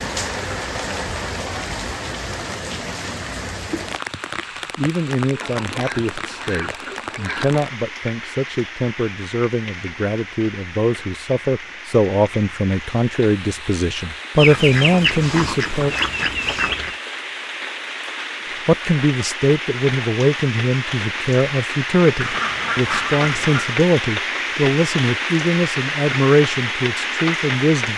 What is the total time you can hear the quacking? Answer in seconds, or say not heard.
6 s.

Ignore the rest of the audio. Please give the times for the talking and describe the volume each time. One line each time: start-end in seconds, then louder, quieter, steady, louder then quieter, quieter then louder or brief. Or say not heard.
4.8-15.9 louder
18.6-27.9 steady.